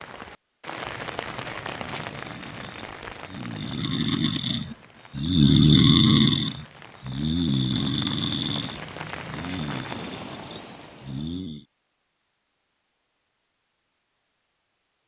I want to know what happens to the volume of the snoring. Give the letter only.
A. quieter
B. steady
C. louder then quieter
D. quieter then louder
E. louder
C.